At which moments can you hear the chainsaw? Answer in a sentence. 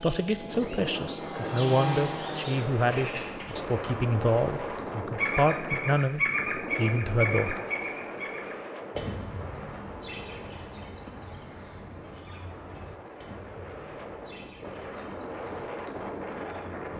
You can hear the chainsaw from 0.0 to 2.6 s.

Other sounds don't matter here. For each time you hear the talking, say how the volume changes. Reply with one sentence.
The talking can be heard from 0.0 to 7.6 s, at a steady volume.